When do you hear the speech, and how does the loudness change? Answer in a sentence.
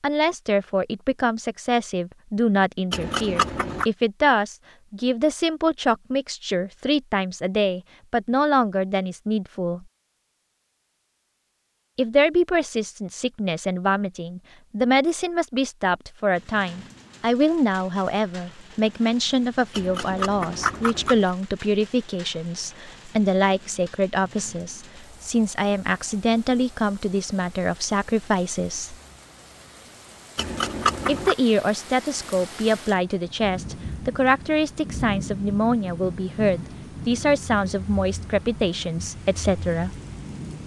You can hear the speech from 0.0 to 9.8 s, at a steady volume; from 11.9 to 28.9 s, at a steady volume; and from 31.1 to 39.9 s, at a steady volume.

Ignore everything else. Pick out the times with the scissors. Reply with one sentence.
You can hear the scissors from 2.9 to 3.9 s, from 19.8 to 21.3 s and from 30.4 to 31.4 s.